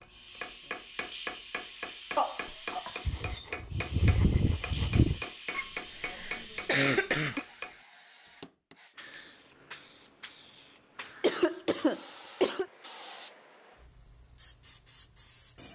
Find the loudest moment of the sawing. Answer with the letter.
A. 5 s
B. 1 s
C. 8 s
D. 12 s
A.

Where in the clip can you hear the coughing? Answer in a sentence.
You can hear the coughing from 2.1 to 3.0 s, from 5.5 to 7.4 s and from 11.2 to 12.7 s.